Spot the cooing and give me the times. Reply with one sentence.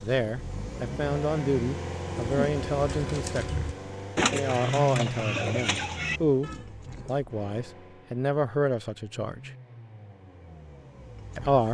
You can hear the cooing from 2.2 to 7.2 s.